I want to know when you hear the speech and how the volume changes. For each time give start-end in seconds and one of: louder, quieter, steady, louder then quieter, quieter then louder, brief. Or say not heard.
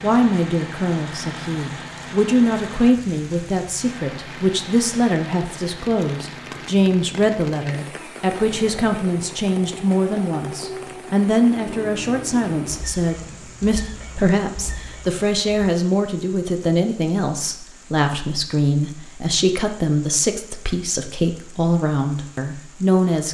0.0-23.2 steady.